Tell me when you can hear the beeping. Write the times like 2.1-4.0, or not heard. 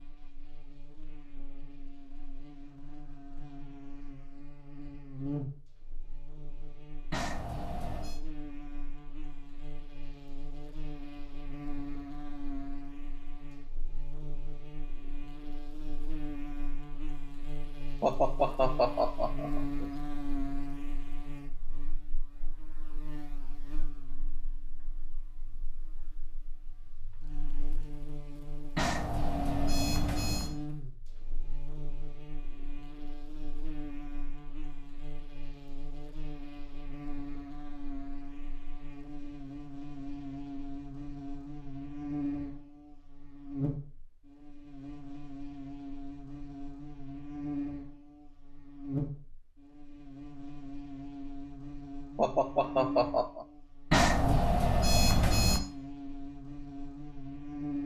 7.1-8.2, 28.8-30.6, 53.9-55.6.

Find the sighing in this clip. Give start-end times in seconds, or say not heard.
18.0-19.9, 52.1-53.5.